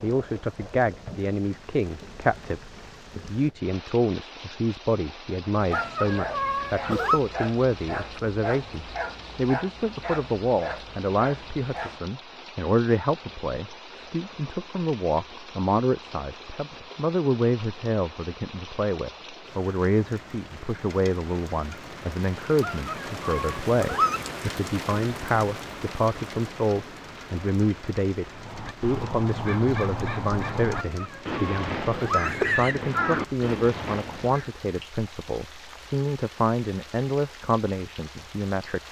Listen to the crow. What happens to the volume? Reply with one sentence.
The loudness of the crow stays about the same.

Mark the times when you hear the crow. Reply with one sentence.
You can hear the crow from 28.3 to 34.5 s.